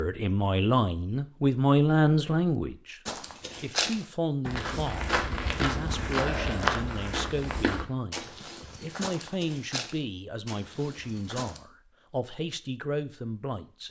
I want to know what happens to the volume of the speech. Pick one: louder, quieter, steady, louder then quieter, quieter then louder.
quieter.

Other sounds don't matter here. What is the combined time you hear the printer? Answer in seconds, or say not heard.
not heard.